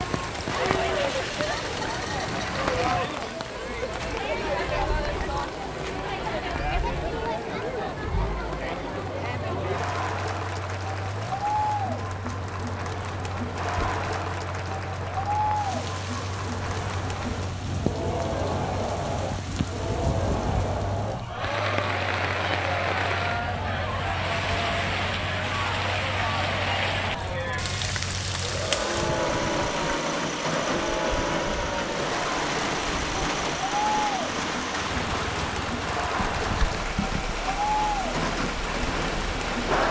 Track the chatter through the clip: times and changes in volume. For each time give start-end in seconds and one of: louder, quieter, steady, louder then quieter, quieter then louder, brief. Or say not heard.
0.0-39.8 steady.